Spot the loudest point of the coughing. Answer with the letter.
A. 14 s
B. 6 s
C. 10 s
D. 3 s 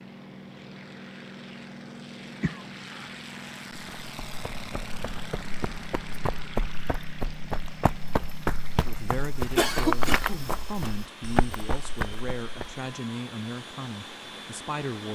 C.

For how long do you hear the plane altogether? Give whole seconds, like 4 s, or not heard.
15 s.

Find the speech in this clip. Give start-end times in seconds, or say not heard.
8.7-15.1.